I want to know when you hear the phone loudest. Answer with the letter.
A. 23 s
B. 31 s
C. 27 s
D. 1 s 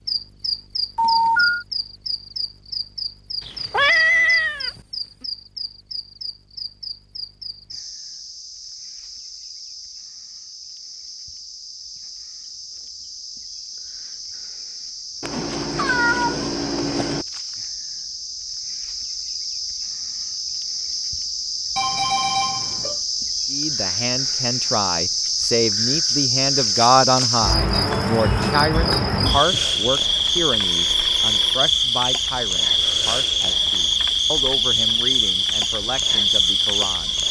D.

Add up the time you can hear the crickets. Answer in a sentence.
You can hear the crickets for 37 seconds altogether.